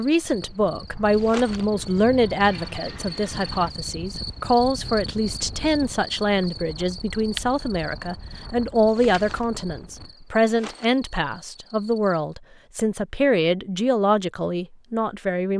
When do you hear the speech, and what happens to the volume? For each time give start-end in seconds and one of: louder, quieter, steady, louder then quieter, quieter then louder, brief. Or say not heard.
0.0-15.5 steady.